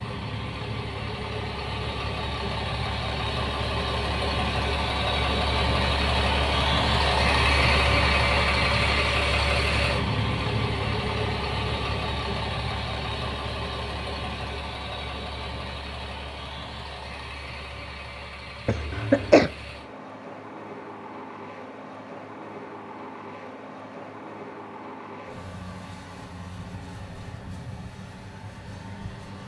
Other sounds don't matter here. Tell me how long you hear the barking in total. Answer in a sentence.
The barking can't be heard in this clip.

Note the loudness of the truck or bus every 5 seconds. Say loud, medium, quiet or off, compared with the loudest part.
medium, loud, medium, quiet, quiet, quiet.